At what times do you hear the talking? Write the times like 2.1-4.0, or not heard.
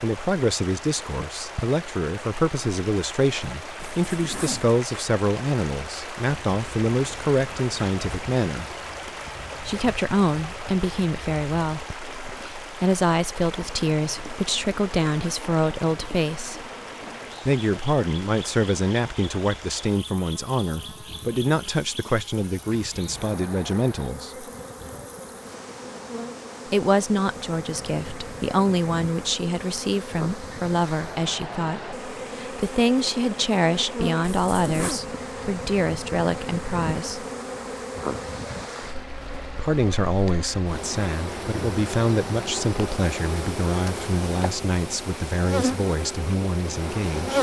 0.0-8.7, 9.6-16.6, 17.4-24.4, 26.7-37.2, 39.5-47.3.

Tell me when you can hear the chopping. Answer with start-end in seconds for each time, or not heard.
not heard.